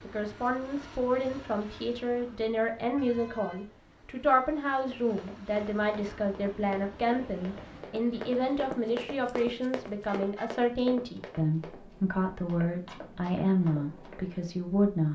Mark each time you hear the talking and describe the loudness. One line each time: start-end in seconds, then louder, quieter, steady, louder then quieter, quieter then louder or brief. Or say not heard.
0.0-15.1 steady.